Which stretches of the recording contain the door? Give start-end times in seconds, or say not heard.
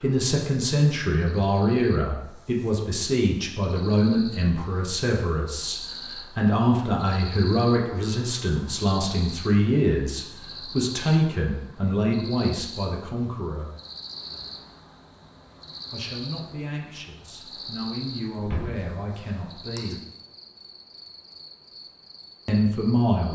18.4-18.9.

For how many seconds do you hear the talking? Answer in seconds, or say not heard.
19 s.